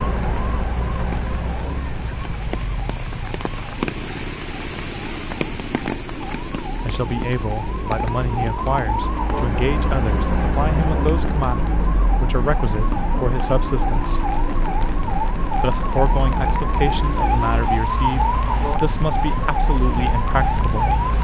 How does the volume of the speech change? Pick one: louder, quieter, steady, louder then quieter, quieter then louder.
steady.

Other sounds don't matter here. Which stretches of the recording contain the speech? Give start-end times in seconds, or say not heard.
6.8-14.2, 15.6-20.9.